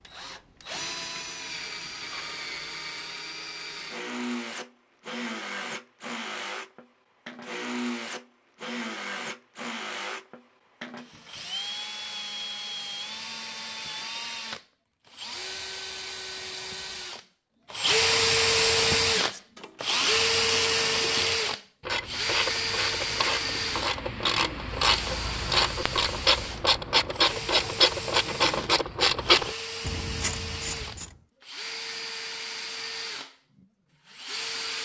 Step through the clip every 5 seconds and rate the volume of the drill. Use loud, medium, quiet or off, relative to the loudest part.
medium, medium, medium, loud, loud, medium, medium.